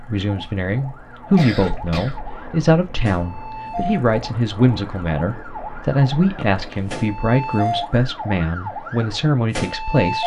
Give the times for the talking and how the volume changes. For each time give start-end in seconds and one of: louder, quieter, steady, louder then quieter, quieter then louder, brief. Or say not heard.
0.0-10.2 steady.